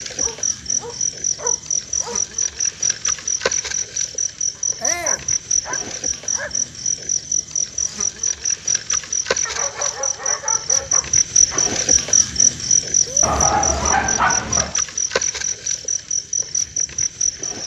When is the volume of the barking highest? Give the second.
14 s.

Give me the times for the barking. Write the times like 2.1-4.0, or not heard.
0.2-2.2, 4.5-6.7, 9.4-11.7, 13.2-14.8.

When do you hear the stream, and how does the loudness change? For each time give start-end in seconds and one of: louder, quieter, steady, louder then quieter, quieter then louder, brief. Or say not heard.
not heard.